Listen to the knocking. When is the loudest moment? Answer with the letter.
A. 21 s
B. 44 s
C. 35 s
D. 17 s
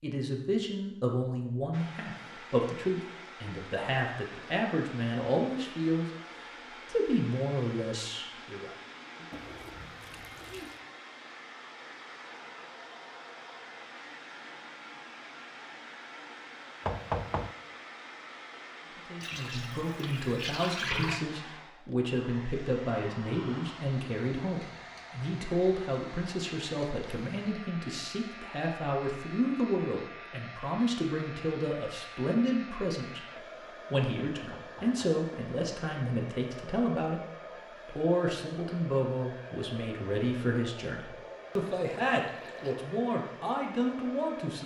D.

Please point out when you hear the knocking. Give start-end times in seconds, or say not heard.
16.8-17.6, 34.5-35.2.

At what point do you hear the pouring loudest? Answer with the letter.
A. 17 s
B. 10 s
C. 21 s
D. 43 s
C.